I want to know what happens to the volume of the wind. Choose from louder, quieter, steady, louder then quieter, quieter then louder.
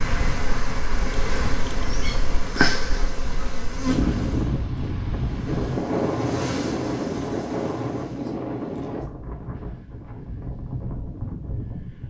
louder then quieter.